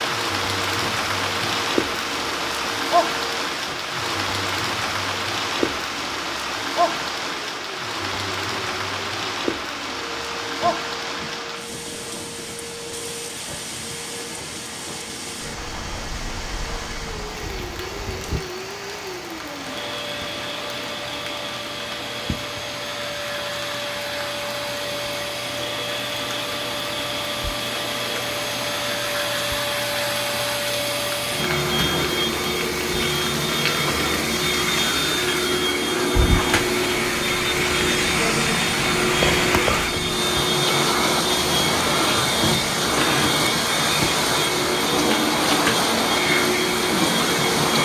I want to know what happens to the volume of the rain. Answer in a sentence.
The volume of the rain goes down, then up.